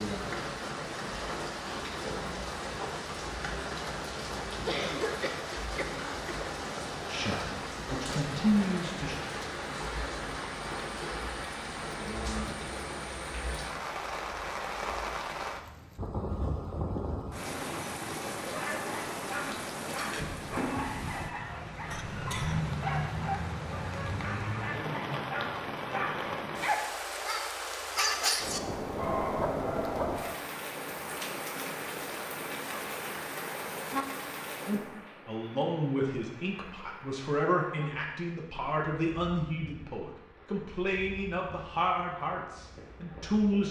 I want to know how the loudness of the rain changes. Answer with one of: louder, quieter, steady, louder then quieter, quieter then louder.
quieter.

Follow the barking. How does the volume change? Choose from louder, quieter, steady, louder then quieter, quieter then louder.
louder.